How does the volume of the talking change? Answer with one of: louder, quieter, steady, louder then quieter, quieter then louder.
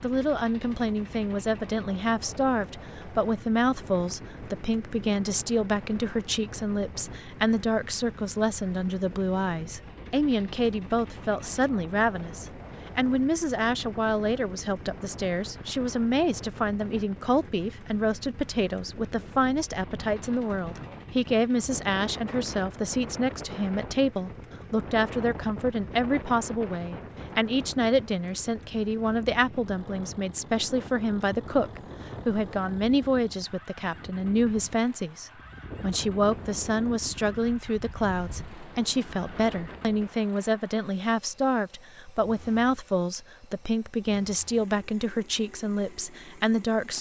steady.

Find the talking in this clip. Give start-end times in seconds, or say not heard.
0.0-46.9.